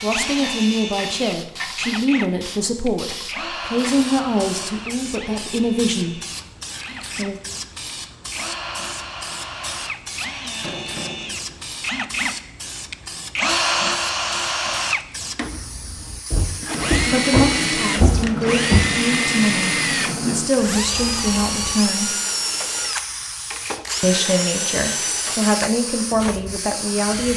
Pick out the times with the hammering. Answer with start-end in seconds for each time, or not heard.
10.6-11.7.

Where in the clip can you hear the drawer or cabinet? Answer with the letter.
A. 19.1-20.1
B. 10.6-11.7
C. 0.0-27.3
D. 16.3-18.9
D.